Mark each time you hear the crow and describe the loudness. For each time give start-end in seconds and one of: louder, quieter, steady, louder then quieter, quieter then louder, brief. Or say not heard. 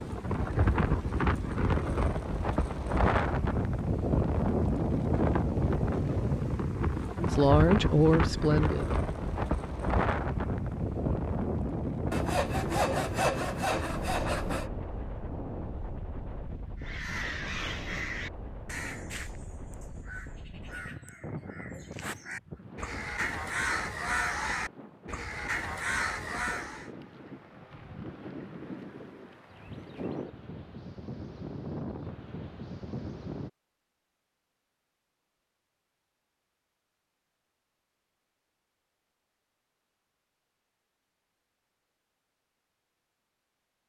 16.8-26.9 quieter then louder.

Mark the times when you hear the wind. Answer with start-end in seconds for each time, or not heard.
0.0-33.5.